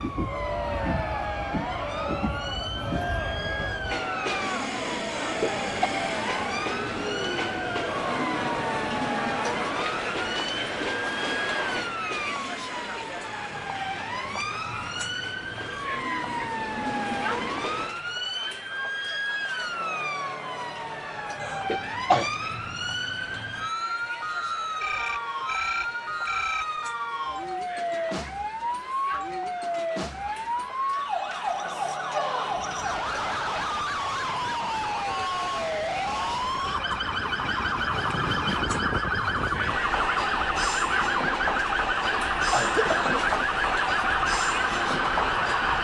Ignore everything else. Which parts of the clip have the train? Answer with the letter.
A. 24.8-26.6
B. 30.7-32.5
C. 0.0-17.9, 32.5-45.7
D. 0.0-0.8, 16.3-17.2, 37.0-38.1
C.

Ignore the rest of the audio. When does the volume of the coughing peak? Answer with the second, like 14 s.
22 s.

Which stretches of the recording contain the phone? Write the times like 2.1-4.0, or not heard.
24.8-26.6.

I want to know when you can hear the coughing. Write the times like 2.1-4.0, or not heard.
5.1-5.9, 21.4-22.3, 42.1-43.2.